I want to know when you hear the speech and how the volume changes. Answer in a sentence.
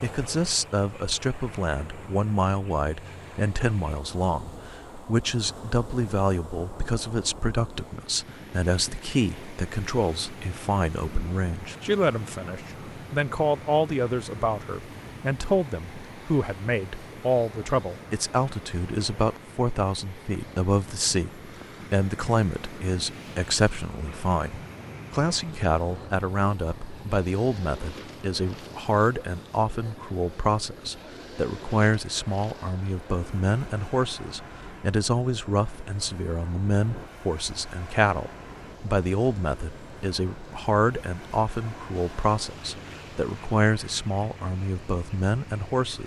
You can hear the speech from 0.0 to 46.0 s, at a steady volume.